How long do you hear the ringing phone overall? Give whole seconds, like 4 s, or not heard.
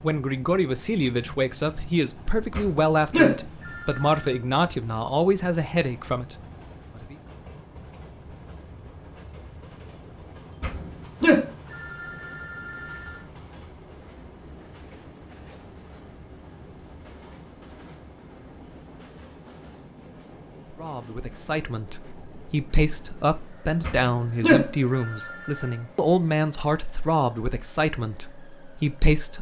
6 s.